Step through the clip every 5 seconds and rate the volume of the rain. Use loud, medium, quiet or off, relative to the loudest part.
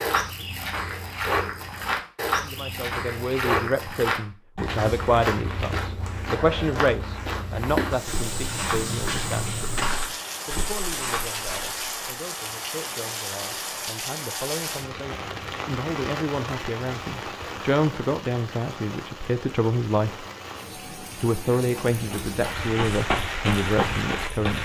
off, loud, loud, loud, loud.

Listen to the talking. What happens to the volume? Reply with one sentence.
The volume of the talking goes down, then up.